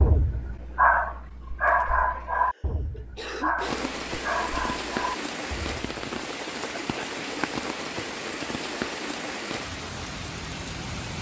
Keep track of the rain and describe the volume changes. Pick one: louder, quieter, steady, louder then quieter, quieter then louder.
steady.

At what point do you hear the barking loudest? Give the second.
1 s.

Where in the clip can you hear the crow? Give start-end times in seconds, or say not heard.
not heard.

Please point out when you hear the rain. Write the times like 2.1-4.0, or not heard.
3.5-11.1.